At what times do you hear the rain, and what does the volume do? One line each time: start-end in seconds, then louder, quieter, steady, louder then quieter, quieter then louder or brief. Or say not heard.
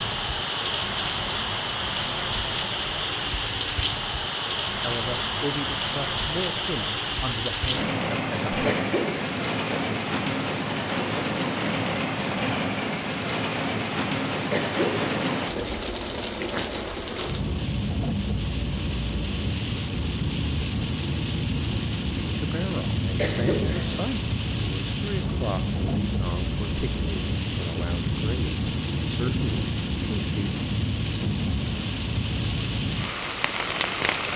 0.0-34.3 steady.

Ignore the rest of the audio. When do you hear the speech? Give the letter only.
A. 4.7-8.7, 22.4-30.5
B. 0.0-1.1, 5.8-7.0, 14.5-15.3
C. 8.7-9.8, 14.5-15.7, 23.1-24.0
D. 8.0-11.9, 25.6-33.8
A.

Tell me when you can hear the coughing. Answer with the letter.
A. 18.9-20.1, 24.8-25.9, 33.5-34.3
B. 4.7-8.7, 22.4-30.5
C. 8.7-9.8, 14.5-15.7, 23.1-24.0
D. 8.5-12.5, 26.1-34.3
C.